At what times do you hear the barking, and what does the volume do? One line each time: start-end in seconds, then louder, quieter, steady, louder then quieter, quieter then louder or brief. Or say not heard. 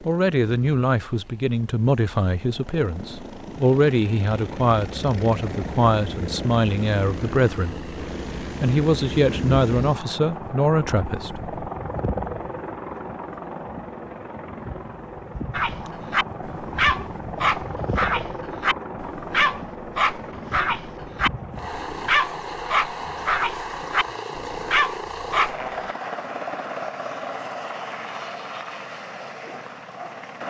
15.5-25.9 steady.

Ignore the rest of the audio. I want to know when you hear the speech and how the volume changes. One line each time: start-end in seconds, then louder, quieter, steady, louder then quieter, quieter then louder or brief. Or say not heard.
0.0-11.5 steady.